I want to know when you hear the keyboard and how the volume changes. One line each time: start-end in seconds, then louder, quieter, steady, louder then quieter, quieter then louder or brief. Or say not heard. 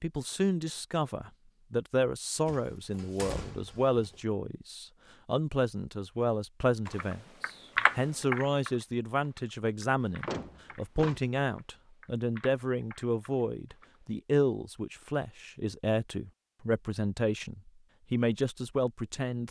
6.8-14.0 quieter then louder.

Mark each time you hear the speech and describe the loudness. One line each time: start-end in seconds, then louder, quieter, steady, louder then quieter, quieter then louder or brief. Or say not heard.
0.0-19.4 steady.